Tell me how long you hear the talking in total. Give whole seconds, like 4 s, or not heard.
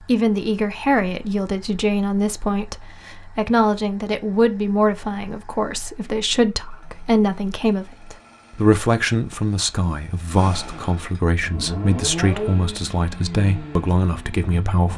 15 s.